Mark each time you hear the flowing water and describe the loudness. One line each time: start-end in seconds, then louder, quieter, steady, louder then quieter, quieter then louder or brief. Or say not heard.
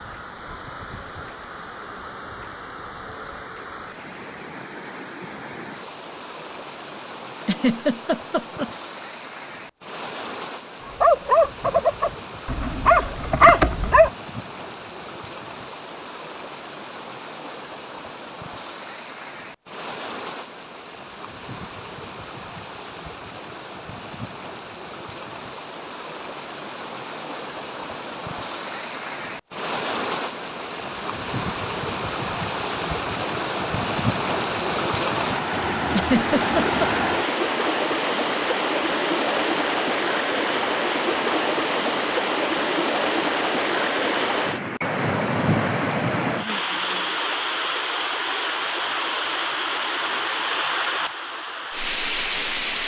0.0-52.8 louder.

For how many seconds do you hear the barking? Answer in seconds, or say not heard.
3 s.